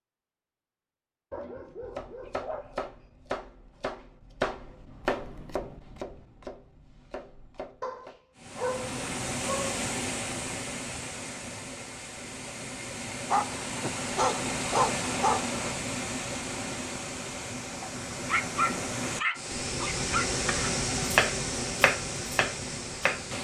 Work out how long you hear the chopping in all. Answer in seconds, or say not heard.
9 s.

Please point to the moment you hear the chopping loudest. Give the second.
21 s.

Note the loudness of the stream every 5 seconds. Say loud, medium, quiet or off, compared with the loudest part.
off, loud, loud, loud, loud.